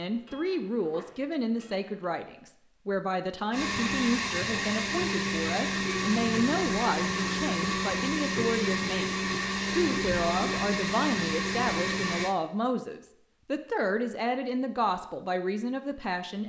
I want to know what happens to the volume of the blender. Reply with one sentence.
The volume of the blender stays about the same.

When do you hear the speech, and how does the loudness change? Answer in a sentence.
You can hear the speech from 0.0 to 16.4 s, at a steady volume.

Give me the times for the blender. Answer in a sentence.
The blender can be heard from 3.5 to 12.3 s.